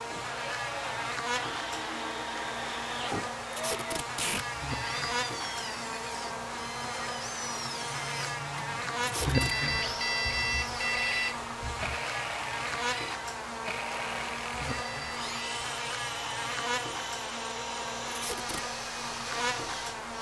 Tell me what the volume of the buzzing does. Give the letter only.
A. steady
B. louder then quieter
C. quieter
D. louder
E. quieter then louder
A.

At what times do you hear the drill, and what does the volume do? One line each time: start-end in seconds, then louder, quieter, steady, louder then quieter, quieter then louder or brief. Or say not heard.
0.0-20.1 steady.